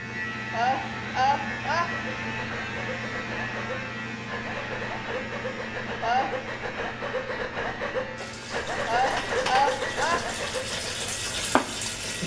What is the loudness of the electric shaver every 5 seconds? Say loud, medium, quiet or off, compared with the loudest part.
loud, medium, medium.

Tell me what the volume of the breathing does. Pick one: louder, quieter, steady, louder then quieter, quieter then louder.
louder.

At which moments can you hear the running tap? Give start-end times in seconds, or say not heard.
8.2-12.2.